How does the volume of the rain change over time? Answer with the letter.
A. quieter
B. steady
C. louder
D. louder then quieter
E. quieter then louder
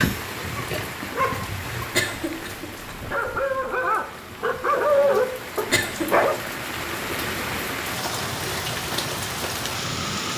E.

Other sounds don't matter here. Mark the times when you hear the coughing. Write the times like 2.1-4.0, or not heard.
1.9-3.0, 5.7-6.2.